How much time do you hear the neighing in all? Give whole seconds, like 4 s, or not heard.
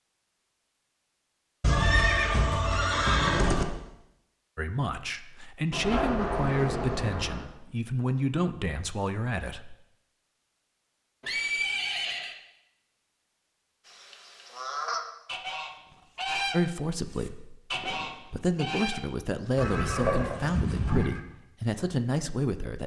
5 s.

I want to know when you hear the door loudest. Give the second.
6 s.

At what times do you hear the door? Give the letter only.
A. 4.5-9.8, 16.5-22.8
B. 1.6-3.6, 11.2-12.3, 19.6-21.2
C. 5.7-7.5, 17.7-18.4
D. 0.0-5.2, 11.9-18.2
C.